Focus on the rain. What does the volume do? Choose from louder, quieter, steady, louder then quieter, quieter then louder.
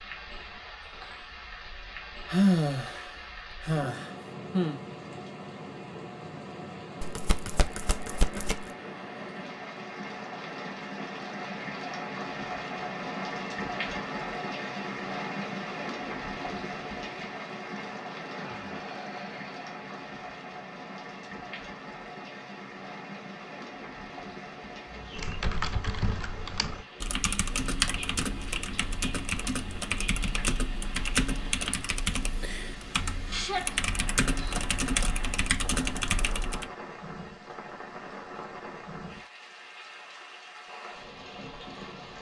louder then quieter.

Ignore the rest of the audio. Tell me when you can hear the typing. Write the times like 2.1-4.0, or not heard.
25.1-36.7.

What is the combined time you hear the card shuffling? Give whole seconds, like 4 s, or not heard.
2 s.